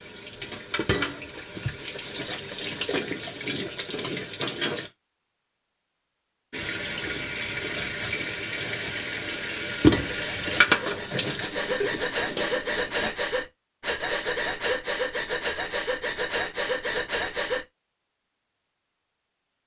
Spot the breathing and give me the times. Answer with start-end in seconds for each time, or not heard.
10.0-17.6.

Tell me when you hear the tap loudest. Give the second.
10 s.